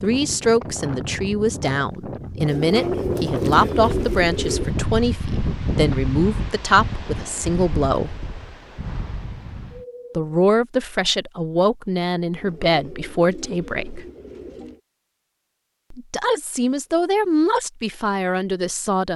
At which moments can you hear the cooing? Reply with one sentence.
The cooing can be heard from 2.5 to 4.8 s and from 12.3 to 14.8 s.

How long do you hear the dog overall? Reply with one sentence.
You can't hear the dog here.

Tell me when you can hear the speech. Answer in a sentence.
You can hear the speech from 0.0 to 8.2 s, from 10.2 to 14.1 s and from 15.9 to 19.1 s.